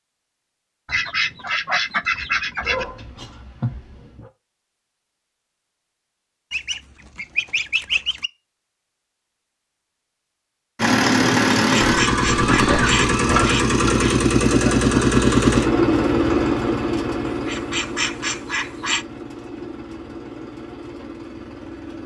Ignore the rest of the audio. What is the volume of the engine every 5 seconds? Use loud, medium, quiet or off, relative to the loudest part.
off, off, loud, loud, quiet.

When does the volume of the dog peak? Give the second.
13 s.